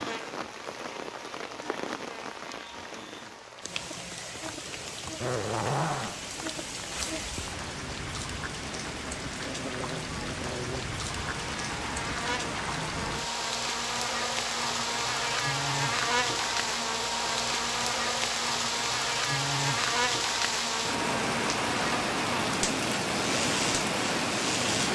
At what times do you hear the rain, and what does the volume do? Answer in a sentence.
The rain can be heard from 0.0 to 24.8 s, getting louder.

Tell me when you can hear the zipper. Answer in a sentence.
You can hear the zipper from 5.2 to 6.2 s.